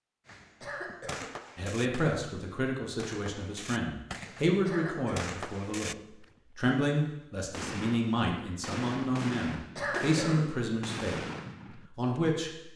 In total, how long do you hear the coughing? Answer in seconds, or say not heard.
2 s.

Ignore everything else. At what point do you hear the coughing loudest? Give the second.
10 s.